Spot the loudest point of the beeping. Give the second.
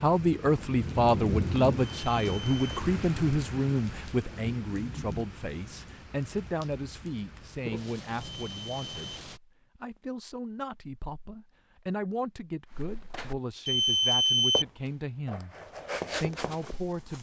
14 s.